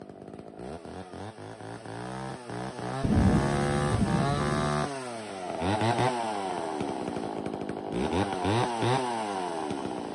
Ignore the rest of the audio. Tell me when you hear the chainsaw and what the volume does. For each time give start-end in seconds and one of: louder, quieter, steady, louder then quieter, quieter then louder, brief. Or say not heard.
0.0-10.0 louder.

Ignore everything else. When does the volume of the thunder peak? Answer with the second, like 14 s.
3 s.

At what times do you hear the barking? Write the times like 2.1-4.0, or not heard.
not heard.